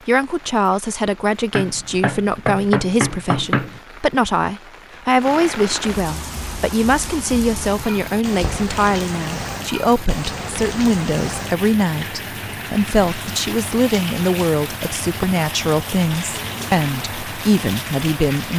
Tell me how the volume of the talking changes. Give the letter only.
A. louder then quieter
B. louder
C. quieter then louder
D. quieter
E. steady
E.